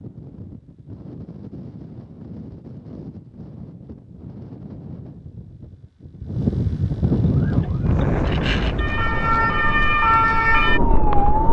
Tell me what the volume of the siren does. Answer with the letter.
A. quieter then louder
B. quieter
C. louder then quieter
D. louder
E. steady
D.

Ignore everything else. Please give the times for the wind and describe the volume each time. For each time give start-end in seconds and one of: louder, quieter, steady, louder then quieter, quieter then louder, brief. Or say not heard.
0.0-11.4 louder then quieter.